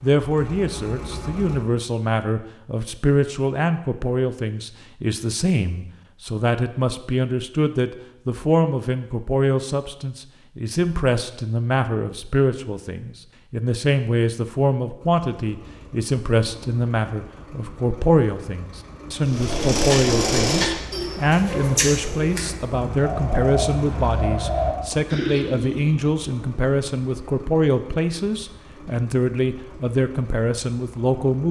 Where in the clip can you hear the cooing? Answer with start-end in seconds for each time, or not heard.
19.2-26.1.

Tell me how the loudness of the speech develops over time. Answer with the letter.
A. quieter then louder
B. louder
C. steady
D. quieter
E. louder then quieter
C.